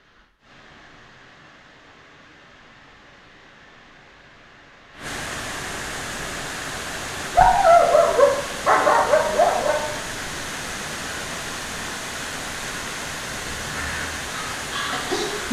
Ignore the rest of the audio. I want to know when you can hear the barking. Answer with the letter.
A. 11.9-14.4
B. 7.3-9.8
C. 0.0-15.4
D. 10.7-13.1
B.